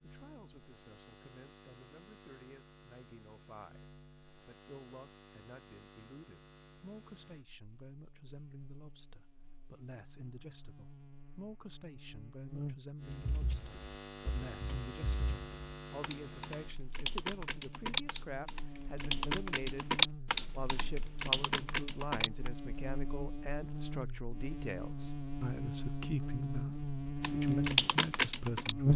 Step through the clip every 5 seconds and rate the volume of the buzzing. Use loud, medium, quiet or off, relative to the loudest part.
quiet, quiet, quiet, quiet, medium, loud.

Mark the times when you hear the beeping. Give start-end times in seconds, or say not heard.
not heard.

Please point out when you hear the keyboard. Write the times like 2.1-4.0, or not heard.
13.1-22.5, 27.2-28.9.